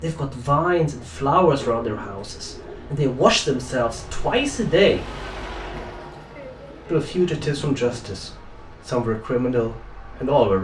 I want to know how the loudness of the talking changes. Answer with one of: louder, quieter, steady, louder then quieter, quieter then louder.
steady.